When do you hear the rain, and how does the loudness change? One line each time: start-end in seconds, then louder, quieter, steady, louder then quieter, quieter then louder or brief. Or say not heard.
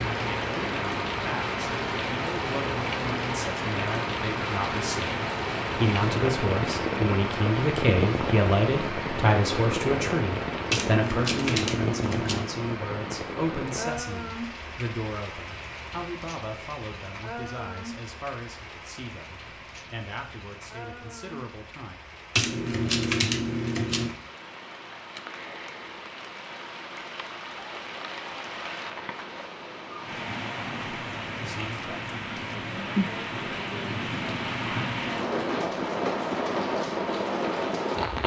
0.0-38.2 quieter then louder.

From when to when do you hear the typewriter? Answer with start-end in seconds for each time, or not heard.
10.7-12.4, 22.4-24.1.